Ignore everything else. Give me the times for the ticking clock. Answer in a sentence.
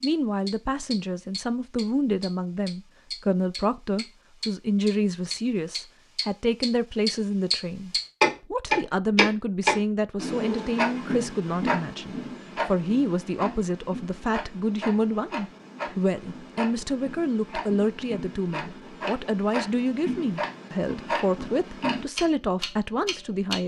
The ticking clock can be heard from 0.0 to 23.6 s.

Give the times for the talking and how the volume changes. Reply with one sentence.
You can hear the talking from 0.0 to 23.6 s, at a steady volume.